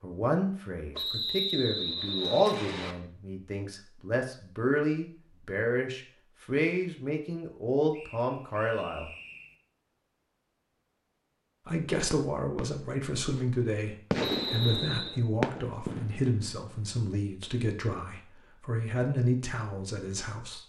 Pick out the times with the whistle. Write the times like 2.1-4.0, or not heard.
0.9-3.0, 7.9-9.6, 14.2-15.2.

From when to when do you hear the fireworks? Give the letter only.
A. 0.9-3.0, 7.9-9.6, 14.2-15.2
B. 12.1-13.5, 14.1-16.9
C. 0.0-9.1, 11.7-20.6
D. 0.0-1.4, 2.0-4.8
B.